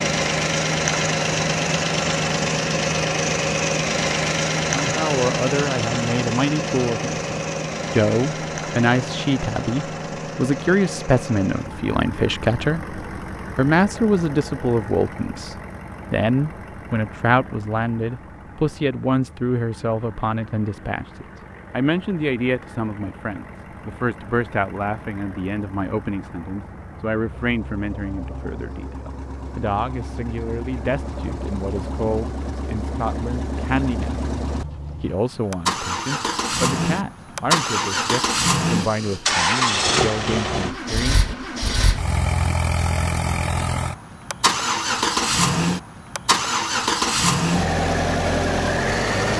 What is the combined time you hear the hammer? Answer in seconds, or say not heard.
not heard.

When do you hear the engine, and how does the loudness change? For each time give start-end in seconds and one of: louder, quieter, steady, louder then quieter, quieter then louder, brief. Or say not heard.
0.0-49.3 quieter then louder.